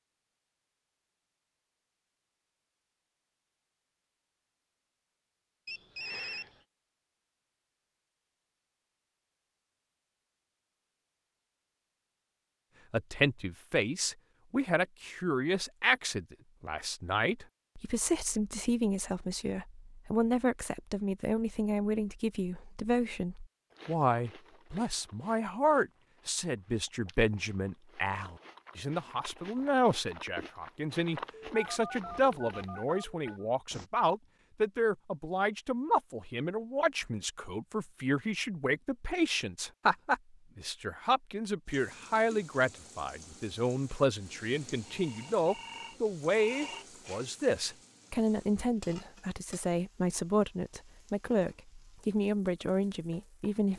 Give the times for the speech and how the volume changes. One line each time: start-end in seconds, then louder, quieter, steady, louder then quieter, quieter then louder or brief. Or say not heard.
12.9-53.7 steady.